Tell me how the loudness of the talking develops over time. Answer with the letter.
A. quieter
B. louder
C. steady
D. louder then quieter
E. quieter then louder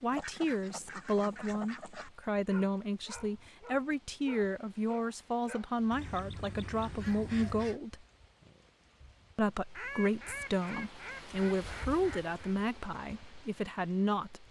C.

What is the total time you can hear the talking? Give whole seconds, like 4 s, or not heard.
13 s.